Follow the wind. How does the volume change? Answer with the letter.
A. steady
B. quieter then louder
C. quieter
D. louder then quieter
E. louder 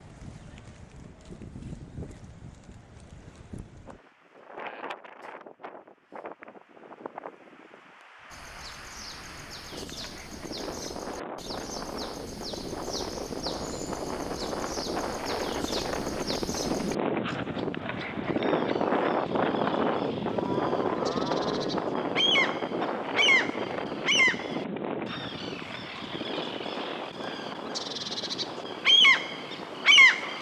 D.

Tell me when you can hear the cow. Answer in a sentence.
The cow can be heard from 20.2 to 21.8 s.